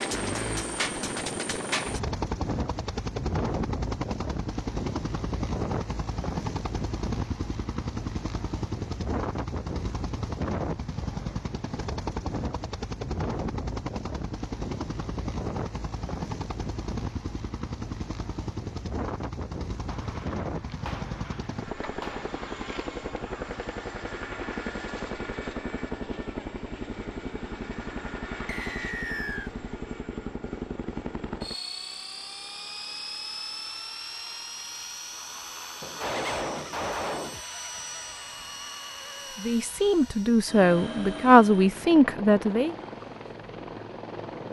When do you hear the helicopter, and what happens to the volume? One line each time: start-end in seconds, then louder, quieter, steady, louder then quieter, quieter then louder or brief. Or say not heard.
0.0-44.4 quieter.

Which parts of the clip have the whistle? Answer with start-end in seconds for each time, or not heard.
28.4-29.5.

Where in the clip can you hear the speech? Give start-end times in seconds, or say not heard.
39.4-42.8.